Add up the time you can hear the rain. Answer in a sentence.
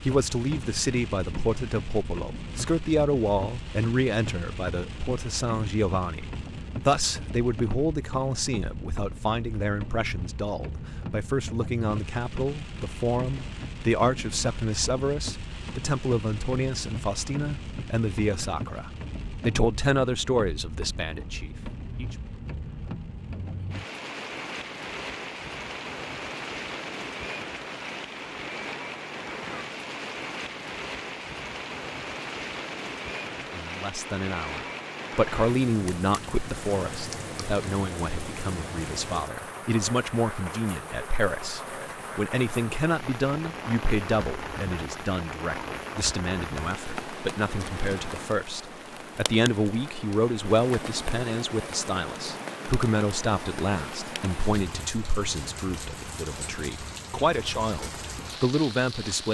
You can hear the rain for 59 seconds altogether.